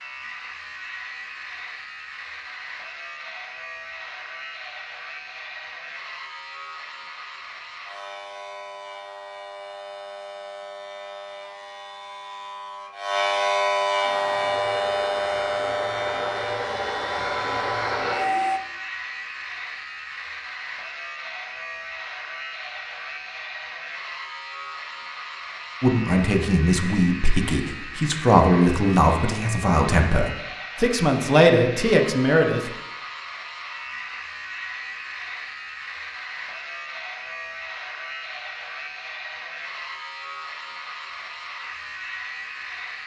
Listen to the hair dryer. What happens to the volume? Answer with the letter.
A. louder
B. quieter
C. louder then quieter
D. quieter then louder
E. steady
A.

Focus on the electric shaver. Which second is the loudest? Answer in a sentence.
The volume of the electric shaver peaks at 14 seconds.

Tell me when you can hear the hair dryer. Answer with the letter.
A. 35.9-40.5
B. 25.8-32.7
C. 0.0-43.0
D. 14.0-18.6
D.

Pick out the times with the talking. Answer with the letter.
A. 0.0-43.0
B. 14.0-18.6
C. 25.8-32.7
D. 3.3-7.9
C.